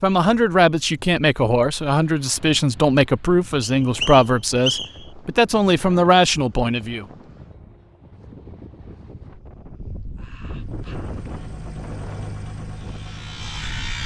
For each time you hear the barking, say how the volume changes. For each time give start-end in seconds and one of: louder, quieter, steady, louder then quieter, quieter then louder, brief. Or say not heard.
not heard.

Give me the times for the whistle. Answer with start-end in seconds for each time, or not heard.
3.6-5.0.